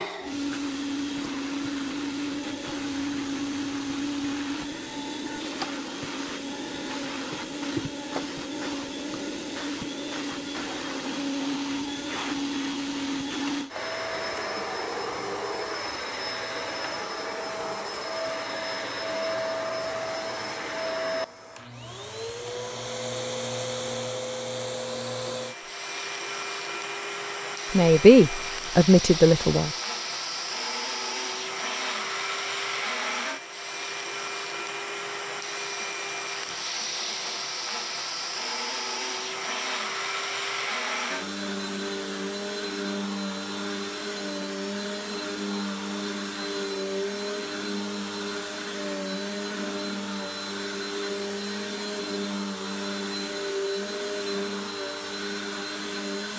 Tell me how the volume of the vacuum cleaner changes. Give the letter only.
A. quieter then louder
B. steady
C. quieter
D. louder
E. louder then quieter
B.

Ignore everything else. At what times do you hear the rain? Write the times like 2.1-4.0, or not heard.
not heard.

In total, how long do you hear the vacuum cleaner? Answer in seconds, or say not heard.
56 s.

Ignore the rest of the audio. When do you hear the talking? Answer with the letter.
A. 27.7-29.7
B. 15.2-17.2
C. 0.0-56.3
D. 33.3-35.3
A.